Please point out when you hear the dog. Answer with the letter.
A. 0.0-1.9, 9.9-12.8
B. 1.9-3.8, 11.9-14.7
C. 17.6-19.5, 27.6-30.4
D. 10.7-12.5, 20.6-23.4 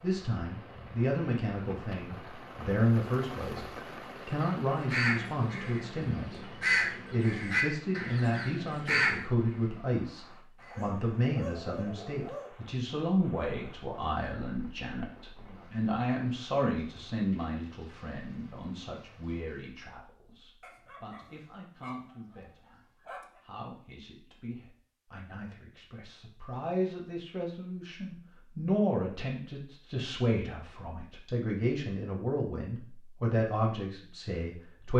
D.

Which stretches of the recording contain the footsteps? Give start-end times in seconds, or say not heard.
not heard.